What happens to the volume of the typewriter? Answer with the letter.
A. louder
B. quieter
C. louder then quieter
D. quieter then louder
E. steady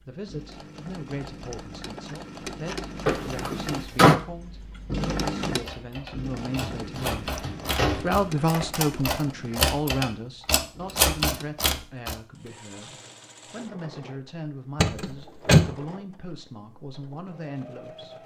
A.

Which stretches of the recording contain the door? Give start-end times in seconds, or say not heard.
3.0-4.2, 6.6-8.2, 14.8-15.7.